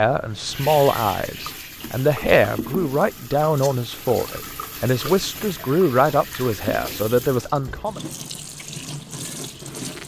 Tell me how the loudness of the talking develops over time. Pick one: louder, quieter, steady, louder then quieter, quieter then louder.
steady.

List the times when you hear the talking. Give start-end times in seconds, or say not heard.
0.0-8.0.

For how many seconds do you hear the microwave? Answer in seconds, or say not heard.
not heard.